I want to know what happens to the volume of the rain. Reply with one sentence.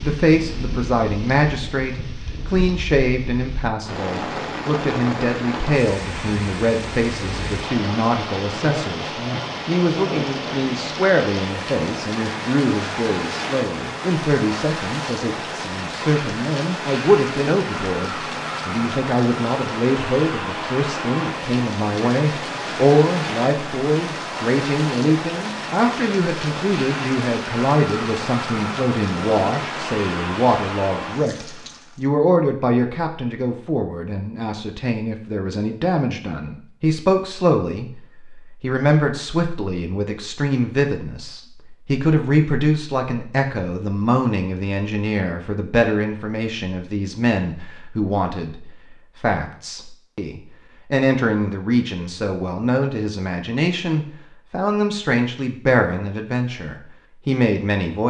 The volume of the rain stays about the same.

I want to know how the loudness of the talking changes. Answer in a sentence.
The loudness of the talking stays about the same.